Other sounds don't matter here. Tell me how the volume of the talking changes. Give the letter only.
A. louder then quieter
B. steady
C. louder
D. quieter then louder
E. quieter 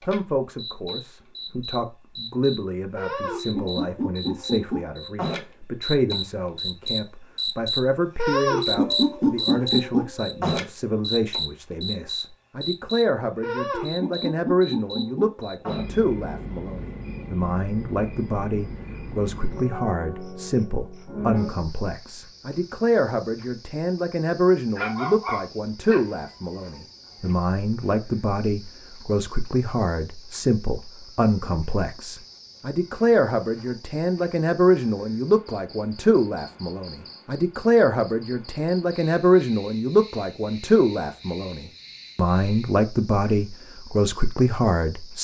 C.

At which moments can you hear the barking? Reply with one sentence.
You can hear the barking from 24.8 to 26.1 s.